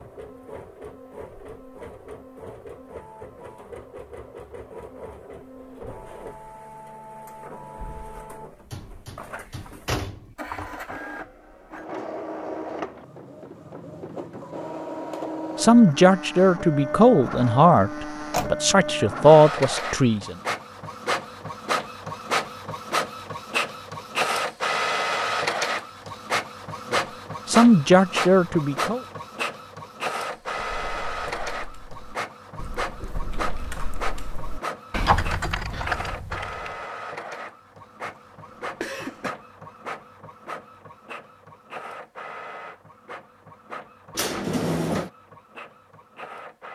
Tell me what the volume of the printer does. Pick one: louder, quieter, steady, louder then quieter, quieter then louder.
louder then quieter.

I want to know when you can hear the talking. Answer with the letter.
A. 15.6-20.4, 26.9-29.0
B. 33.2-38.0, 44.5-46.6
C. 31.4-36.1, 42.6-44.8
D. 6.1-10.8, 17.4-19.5
A.